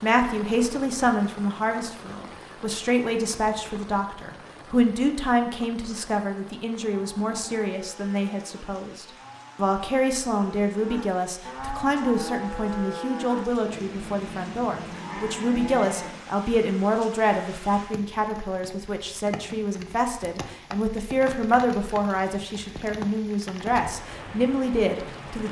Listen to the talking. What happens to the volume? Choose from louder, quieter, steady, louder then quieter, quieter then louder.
steady.